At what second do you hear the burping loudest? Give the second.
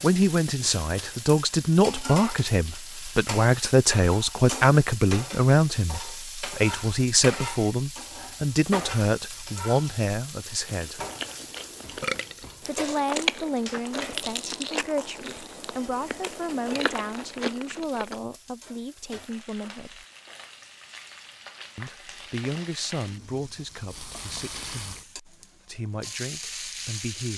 12 s.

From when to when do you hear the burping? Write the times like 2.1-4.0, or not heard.
10.8-12.7.